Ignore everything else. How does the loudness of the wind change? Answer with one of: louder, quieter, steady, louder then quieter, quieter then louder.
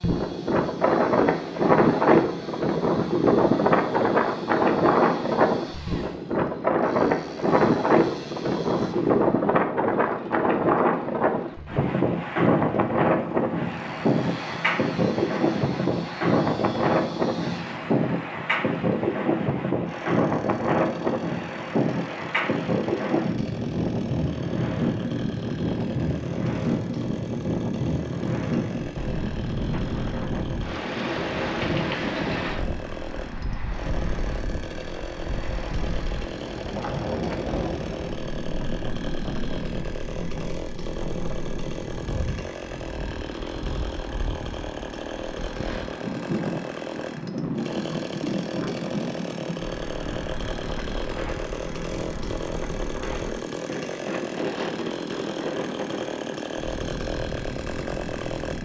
quieter.